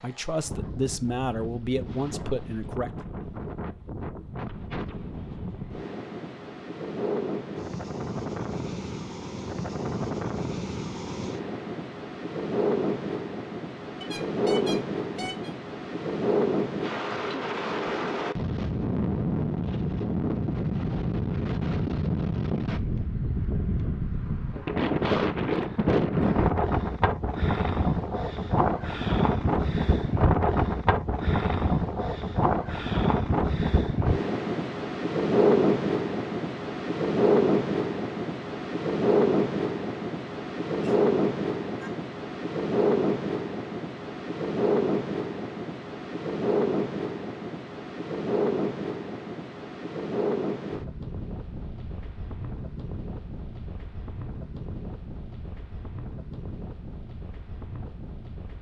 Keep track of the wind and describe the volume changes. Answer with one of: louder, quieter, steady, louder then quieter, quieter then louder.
louder then quieter.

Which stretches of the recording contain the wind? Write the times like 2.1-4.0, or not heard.
0.0-58.5.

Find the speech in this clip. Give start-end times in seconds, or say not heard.
0.0-2.9.